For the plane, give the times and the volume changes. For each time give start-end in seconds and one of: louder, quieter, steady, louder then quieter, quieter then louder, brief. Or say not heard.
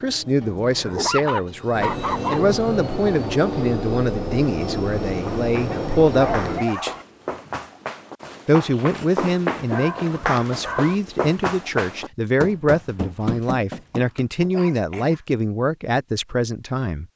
0.0-6.7 louder.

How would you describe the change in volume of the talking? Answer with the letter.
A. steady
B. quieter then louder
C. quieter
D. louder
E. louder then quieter
A.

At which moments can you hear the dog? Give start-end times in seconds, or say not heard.
0.4-2.4, 5.7-7.0, 9.7-10.9, 14.1-15.2.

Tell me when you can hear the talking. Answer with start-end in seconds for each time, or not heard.
0.0-7.0, 8.4-17.1.